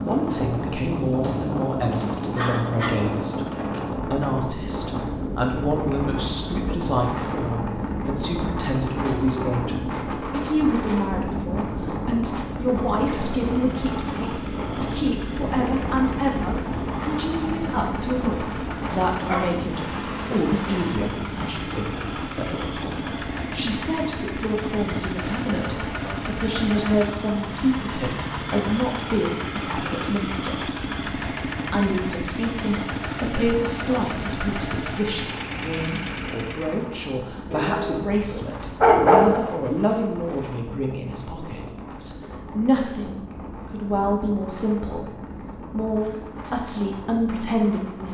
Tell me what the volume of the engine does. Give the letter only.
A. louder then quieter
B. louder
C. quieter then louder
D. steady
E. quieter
B.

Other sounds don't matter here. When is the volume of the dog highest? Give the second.
39 s.